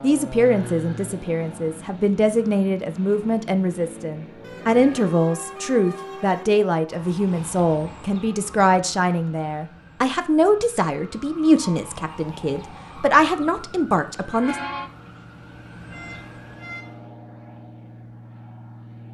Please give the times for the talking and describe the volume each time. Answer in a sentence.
You can hear the talking from 0.0 to 14.6 s, at a steady volume.